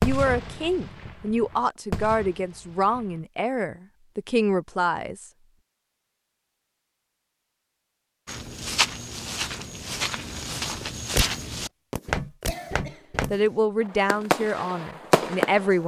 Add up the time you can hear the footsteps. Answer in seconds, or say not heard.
5 s.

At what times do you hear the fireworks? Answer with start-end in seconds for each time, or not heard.
0.0-3.1, 11.1-15.7.